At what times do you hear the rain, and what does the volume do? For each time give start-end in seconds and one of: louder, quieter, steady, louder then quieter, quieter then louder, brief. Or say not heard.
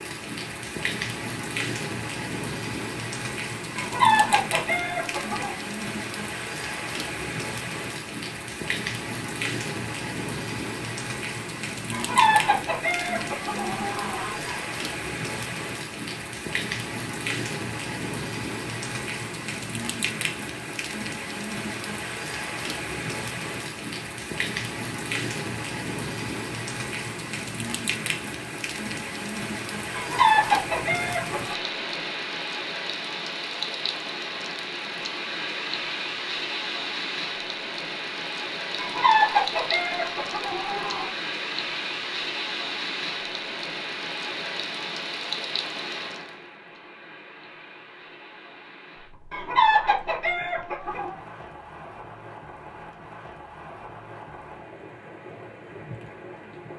0.0-56.7 quieter.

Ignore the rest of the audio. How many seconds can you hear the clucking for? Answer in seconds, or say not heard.
10 s.